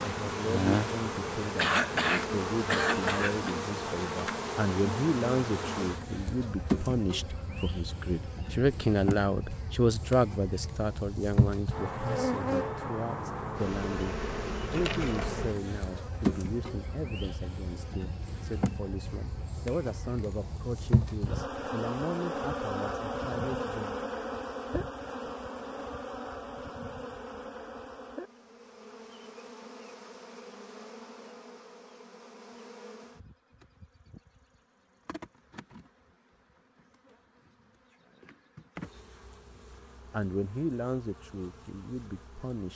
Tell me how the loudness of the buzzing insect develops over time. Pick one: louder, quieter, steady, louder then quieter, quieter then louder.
quieter.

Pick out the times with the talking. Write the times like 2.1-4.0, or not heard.
0.0-23.9, 40.1-42.7.